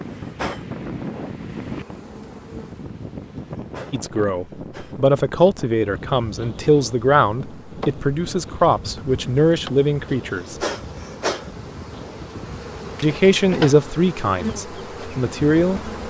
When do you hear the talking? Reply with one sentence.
The talking can be heard from 3.9 to 10.6 s and from 13.0 to 15.9 s.